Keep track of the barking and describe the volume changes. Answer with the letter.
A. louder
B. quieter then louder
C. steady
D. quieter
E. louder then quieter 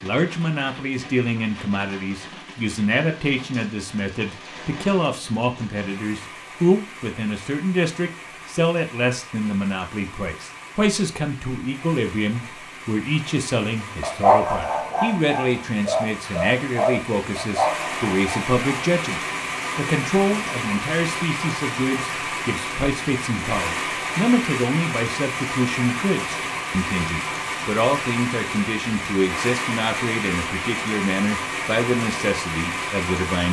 C.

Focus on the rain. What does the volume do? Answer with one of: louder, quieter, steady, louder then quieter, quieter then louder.
louder.